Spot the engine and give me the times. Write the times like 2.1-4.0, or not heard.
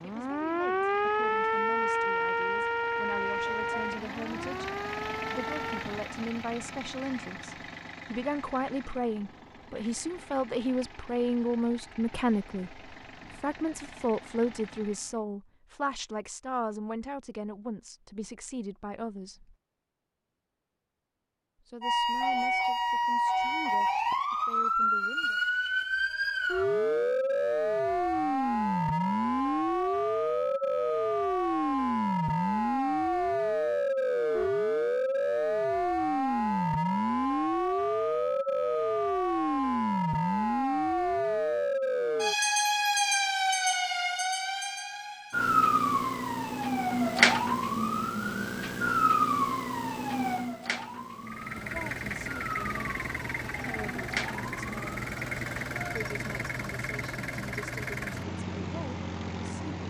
0.0-15.2, 51.2-59.8.